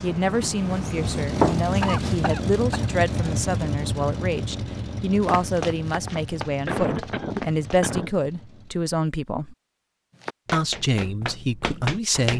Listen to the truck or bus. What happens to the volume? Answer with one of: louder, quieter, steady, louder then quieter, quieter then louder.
quieter.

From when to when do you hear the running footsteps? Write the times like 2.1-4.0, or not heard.
0.2-2.2, 5.2-7.8, 10.2-12.3.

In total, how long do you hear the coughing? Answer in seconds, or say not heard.
3 s.